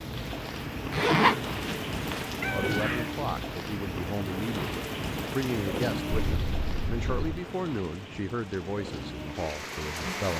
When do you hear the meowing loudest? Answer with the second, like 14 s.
3 s.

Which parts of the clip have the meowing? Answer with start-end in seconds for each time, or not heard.
2.4-3.1, 6.1-7.4.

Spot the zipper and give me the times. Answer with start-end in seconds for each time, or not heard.
0.9-2.3.